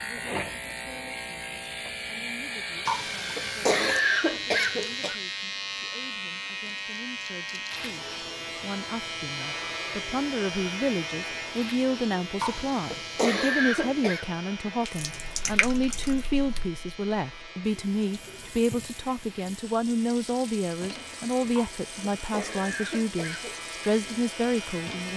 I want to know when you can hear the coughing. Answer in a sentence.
You can hear the coughing from 2.9 to 5.2 s, from 12.4 to 14.2 s and from 21.5 to 23.6 s.